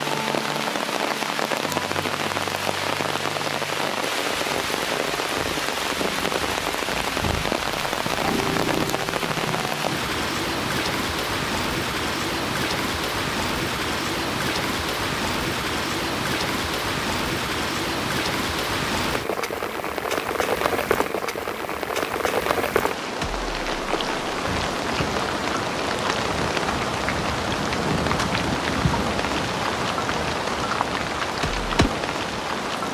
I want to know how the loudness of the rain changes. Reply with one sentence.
The loudness of the rain stays about the same.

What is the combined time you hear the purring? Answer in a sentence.
The purring can be heard for 14 seconds in total.